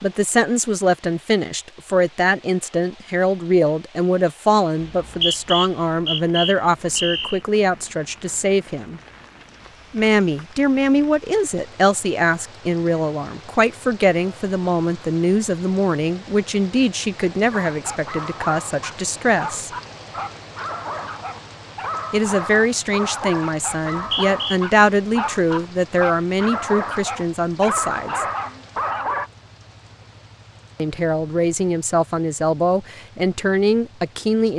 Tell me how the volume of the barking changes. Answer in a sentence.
The loudness of the barking goes up.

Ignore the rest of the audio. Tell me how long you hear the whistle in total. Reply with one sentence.
The whistle can be heard for 3 seconds in total.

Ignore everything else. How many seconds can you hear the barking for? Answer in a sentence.
You can hear the barking for 12 seconds altogether.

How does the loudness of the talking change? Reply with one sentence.
The volume of the talking stays about the same.